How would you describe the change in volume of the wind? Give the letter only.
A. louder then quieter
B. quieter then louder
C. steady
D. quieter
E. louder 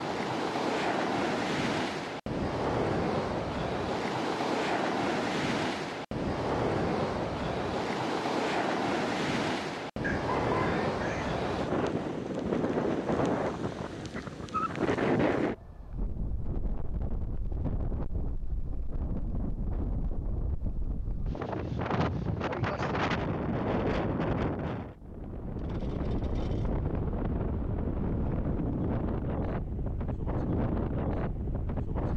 C.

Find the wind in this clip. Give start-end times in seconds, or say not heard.
0.0-32.1.